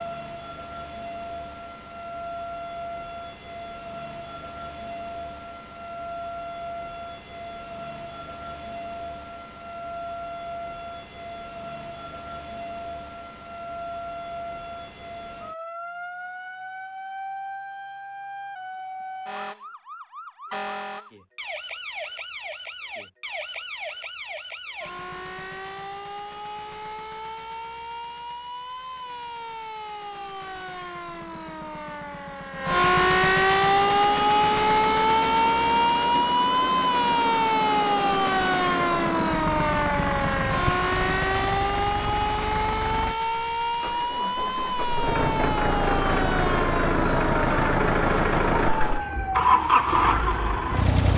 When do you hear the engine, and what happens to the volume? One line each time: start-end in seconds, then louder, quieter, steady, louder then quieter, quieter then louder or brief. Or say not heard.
33.5-51.1 louder.